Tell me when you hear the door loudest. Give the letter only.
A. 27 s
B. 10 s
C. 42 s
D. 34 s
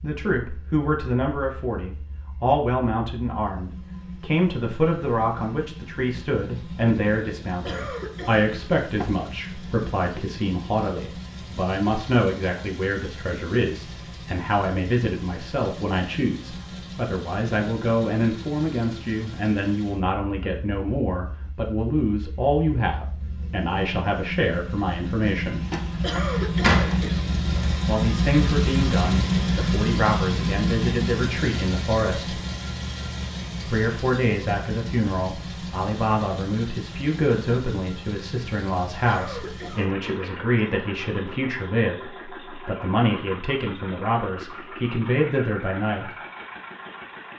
A.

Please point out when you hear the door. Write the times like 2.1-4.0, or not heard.
8.9-9.8, 25.7-27.0.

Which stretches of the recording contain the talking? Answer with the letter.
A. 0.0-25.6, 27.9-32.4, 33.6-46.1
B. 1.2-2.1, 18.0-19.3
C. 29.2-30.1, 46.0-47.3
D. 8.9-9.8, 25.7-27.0
A.